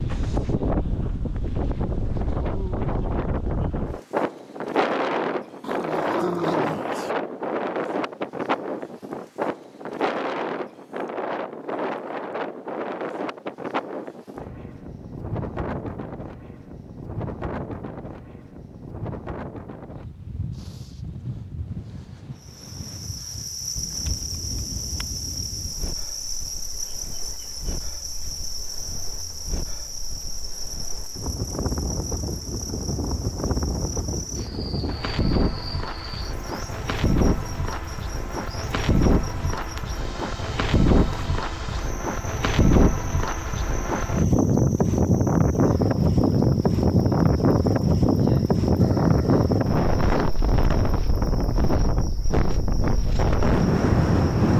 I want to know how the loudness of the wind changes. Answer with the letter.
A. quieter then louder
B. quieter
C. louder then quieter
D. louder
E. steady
A.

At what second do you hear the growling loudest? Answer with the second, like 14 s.
6 s.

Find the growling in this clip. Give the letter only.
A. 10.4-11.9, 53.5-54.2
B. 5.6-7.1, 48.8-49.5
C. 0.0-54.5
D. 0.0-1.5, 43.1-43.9
B.